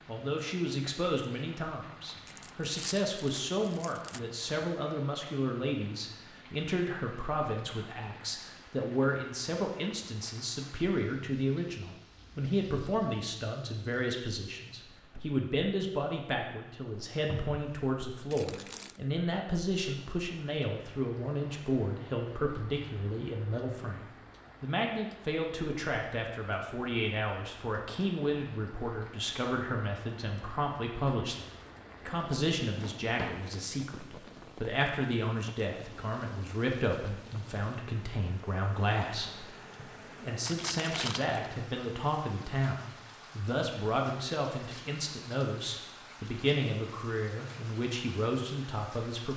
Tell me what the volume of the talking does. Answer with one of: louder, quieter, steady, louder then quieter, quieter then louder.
steady.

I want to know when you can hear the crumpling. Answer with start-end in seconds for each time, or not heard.
2.2-4.2, 18.3-19.0, 40.5-41.4.